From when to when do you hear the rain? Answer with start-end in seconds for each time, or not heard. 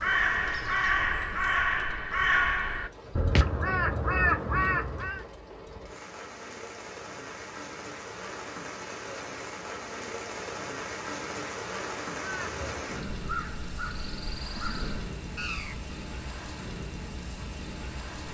0.0-18.3.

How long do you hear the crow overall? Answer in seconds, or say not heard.
9 s.